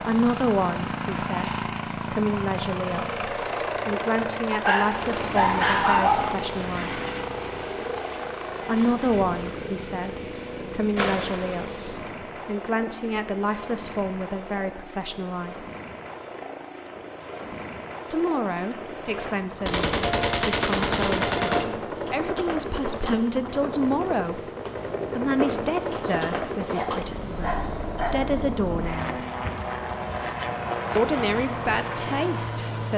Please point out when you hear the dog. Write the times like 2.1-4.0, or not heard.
4.5-6.3, 26.0-28.3.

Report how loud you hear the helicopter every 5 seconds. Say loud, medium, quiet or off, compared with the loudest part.
loud, loud, medium, medium, loud, loud, loud.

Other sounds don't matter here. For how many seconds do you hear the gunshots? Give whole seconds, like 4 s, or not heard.
3 s.